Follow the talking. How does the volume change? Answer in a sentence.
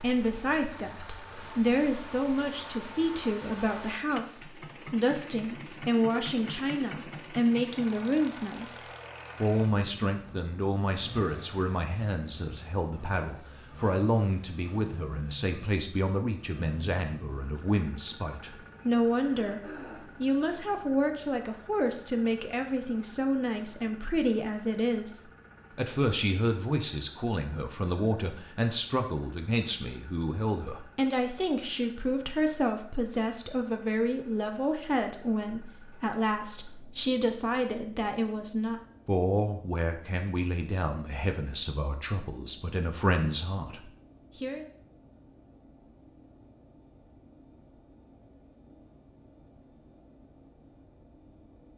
The volume of the talking stays about the same.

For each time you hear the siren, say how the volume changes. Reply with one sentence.
The siren can't be heard in this clip.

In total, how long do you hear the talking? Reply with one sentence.
You can hear the talking for 44 seconds altogether.